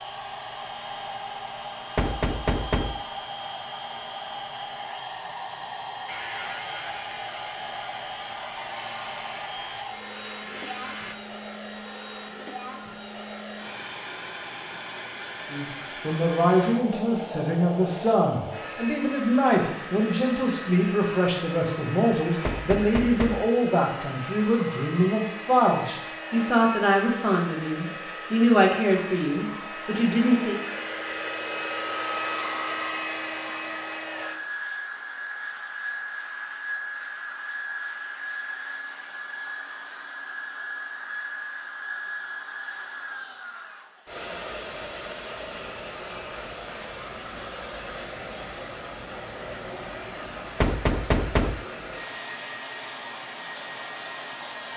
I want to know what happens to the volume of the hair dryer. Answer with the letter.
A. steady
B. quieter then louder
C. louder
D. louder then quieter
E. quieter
A.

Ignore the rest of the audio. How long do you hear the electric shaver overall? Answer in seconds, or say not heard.
5 s.